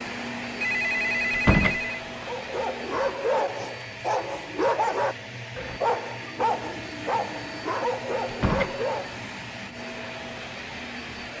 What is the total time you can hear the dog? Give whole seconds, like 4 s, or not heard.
7 s.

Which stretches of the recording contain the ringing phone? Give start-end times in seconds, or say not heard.
0.6-2.0.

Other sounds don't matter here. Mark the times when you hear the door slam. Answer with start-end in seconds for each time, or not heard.
1.3-1.8, 8.2-8.8.